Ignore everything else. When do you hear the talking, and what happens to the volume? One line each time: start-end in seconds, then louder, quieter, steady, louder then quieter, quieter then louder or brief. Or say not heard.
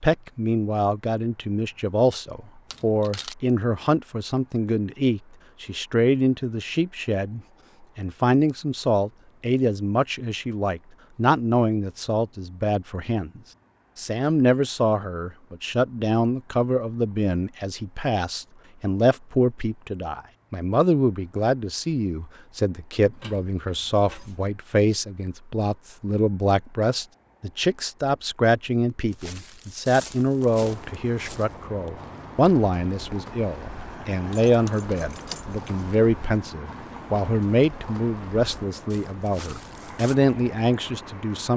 0.0-41.5 steady.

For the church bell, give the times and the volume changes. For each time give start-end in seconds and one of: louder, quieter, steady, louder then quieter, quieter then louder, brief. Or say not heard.
not heard.